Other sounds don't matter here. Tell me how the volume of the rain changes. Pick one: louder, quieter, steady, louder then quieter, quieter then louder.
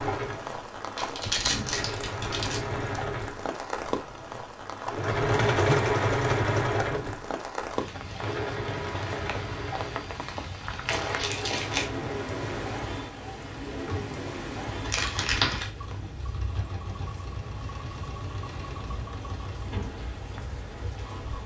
quieter.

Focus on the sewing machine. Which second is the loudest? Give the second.
6 s.